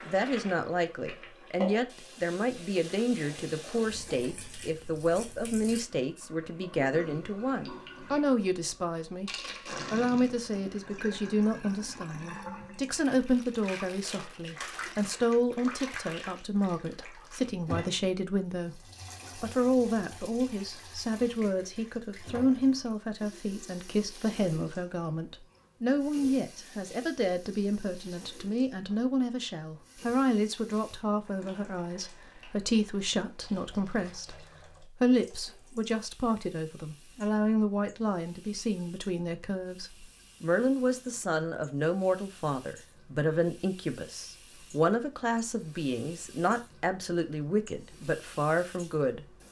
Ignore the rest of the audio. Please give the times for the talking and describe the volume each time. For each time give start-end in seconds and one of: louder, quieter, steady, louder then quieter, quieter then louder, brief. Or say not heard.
0.1-49.2 steady.